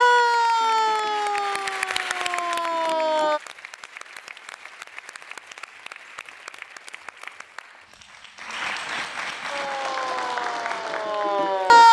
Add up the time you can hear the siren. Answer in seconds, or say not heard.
6 s.